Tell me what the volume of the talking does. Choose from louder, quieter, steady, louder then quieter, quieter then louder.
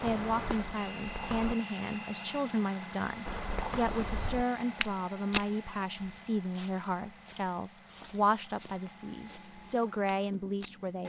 steady.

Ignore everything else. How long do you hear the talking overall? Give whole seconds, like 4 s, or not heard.
11 s.